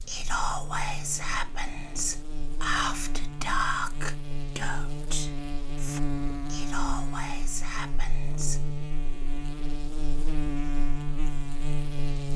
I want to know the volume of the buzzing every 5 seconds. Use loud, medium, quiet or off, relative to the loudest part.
medium, loud, loud.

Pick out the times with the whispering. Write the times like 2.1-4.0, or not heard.
0.1-8.7.